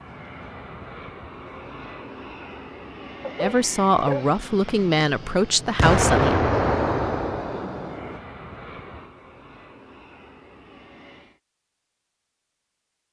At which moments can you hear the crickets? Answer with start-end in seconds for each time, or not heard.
not heard.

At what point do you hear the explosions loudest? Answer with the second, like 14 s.
6 s.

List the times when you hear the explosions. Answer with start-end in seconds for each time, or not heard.
5.8-8.2.